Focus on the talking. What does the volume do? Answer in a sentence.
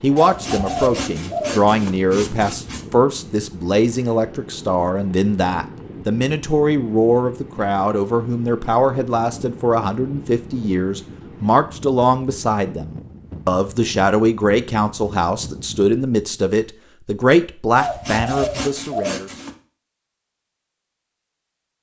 The loudness of the talking stays about the same.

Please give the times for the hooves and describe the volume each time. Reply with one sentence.
The hooves can't be heard in this clip.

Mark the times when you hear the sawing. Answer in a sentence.
You can hear the sawing from 0.1 to 2.9 s and from 17.8 to 19.6 s.